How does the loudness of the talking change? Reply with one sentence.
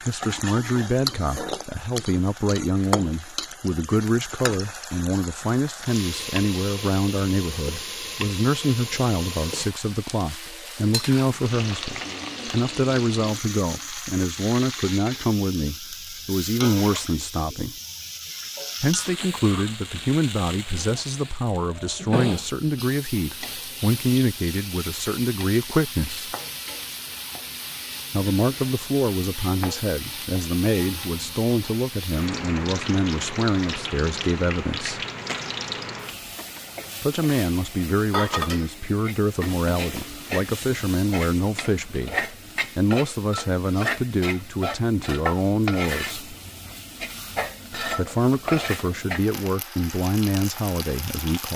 The volume of the talking stays about the same.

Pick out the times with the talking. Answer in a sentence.
The talking can be heard from 0.1 to 17.8 s, from 18.8 to 26.4 s, from 28.1 to 35.0 s, from 37.0 to 46.2 s and from 47.8 to 51.5 s.